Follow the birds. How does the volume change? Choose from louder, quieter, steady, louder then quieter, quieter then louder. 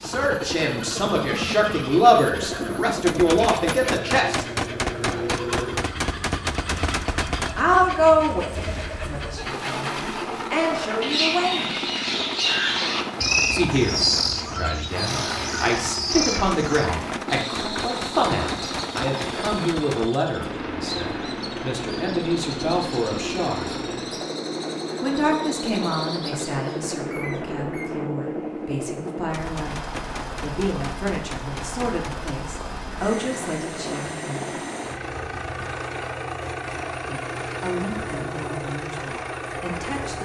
louder then quieter.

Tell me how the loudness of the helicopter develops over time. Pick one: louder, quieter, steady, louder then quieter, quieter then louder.
steady.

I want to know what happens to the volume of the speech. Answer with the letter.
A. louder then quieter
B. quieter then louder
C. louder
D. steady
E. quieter
E.